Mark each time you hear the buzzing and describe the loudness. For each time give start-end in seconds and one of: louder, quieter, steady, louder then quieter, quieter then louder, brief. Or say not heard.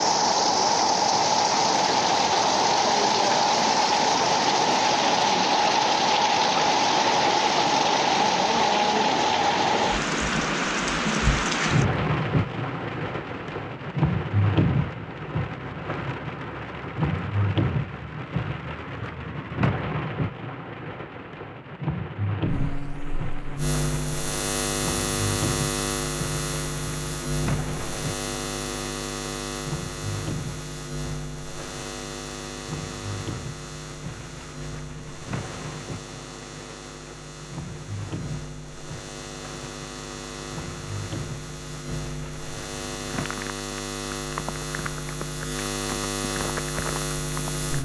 22.4-47.7 quieter then louder.